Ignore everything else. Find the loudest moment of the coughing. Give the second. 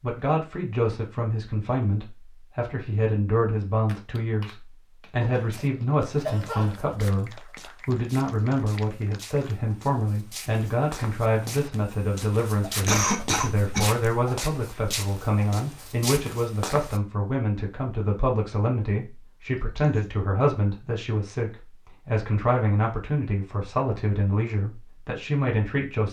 13 s.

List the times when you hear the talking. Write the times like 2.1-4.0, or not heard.
0.0-26.0.